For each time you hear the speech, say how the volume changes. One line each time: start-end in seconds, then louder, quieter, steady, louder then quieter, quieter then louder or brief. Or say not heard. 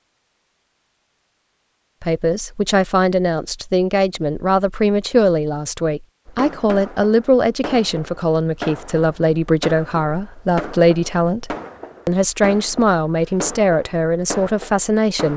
2.0-15.3 steady.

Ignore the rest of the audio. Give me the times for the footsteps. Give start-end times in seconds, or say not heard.
not heard.